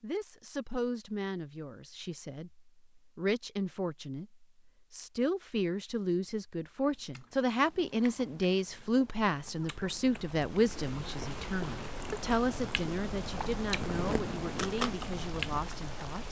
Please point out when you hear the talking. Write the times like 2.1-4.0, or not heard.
0.0-16.2.